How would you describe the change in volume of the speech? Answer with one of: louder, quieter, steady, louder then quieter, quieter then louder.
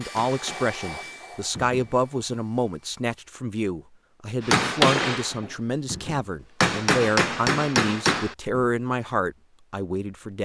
steady.